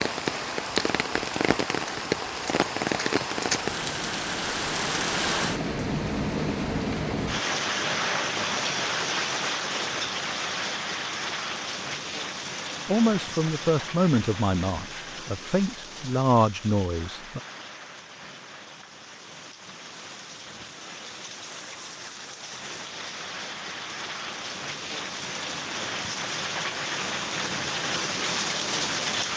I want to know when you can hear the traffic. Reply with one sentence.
The traffic can't be heard in this clip.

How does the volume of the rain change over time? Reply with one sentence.
The volume of the rain goes down, then up.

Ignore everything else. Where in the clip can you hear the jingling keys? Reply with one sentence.
You can't hear the jingling keys here.